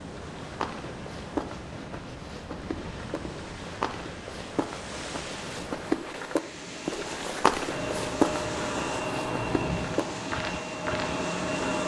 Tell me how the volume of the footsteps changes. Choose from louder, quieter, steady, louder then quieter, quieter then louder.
louder then quieter.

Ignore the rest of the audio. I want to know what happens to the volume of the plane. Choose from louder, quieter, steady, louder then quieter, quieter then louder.
louder.